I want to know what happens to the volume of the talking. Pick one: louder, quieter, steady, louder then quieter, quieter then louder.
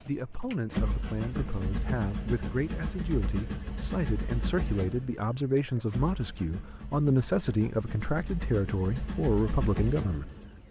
louder.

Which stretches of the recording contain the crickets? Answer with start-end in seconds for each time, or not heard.
not heard.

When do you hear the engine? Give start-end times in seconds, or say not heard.
0.0-10.6.